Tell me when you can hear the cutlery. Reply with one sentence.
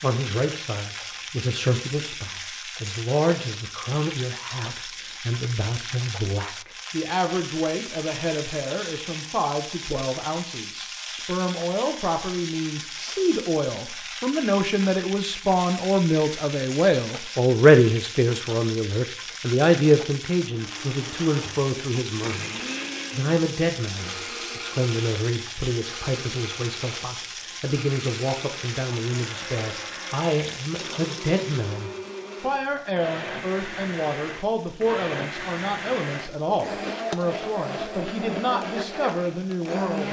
The cutlery can't be heard in this clip.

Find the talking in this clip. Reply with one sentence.
You can hear the talking from 0.0 to 40.0 s.